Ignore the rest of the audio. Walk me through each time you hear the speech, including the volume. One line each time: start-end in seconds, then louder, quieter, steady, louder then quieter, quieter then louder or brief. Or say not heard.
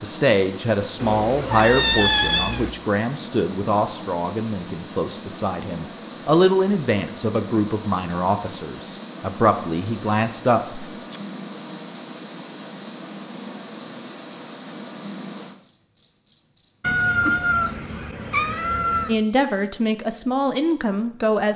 0.0-10.8 steady
19.1-21.5 brief.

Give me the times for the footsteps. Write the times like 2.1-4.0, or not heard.
not heard.